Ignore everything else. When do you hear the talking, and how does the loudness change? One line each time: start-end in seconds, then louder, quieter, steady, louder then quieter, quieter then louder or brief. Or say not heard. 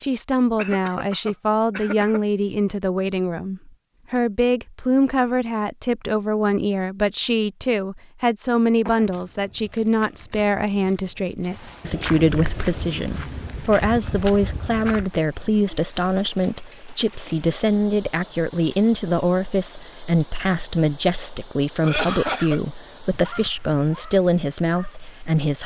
0.0-25.6 steady.